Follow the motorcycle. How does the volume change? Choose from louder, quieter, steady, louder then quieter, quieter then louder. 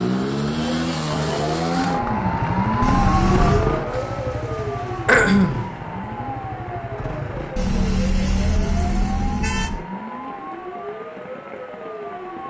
quieter.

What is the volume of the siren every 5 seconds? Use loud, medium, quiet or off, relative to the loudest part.
loud, medium, medium.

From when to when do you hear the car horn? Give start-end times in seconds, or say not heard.
2.8-3.7, 7.5-9.8.